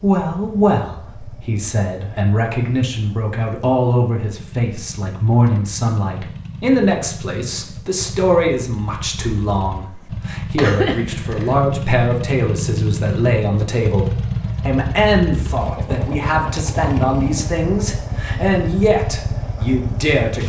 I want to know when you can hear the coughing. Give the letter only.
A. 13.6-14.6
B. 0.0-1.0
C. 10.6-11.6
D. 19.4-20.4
C.